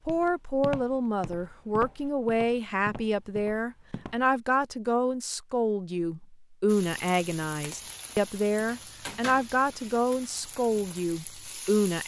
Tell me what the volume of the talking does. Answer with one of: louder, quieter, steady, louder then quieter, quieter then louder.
steady.